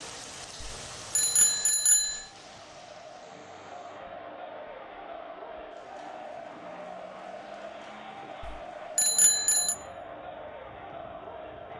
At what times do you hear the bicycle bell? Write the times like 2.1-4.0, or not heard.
0.6-2.2, 8.4-9.8.